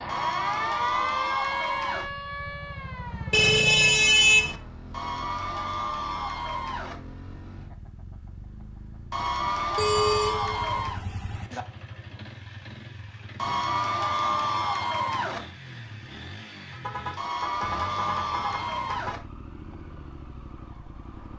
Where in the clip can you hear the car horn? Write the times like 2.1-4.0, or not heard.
3.3-4.6, 9.8-11.7, 16.7-19.1.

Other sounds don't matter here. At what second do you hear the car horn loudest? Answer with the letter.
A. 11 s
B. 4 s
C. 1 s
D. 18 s
B.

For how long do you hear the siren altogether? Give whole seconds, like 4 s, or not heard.
5 s.